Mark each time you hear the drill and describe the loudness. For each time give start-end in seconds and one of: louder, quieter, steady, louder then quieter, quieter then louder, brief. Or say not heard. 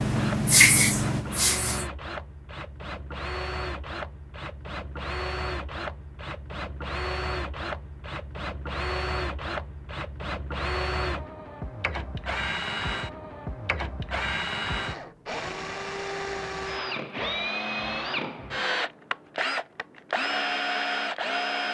0.0-21.6 louder.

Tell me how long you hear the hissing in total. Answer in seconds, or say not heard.
2 s.